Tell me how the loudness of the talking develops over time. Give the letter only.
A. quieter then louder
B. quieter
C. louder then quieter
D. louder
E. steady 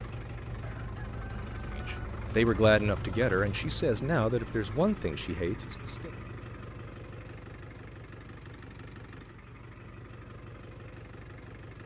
B.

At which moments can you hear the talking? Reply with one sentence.
You can hear the talking from 1.7 to 6.1 s.